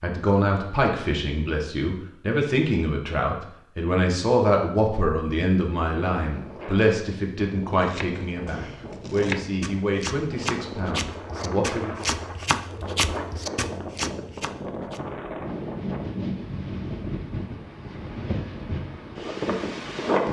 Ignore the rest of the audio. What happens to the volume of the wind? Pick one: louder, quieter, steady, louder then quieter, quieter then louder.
louder.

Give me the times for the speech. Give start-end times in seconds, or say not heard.
0.0-12.1.